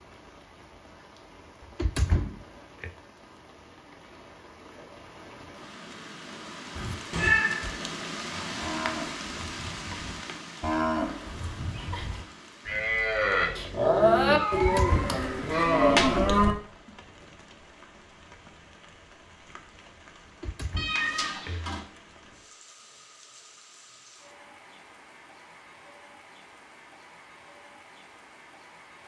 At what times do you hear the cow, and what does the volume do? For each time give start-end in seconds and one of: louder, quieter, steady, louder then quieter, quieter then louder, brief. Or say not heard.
8.3-16.6 louder.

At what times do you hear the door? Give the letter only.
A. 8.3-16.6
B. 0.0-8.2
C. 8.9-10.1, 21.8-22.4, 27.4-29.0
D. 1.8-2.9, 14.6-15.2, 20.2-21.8
D.